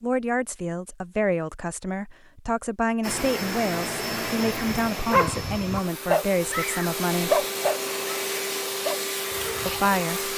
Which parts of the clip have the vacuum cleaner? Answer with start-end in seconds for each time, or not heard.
3.0-10.3.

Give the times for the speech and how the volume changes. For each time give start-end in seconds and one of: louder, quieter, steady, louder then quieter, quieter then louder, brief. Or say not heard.
0.0-7.5 steady
9.7-10.3 brief.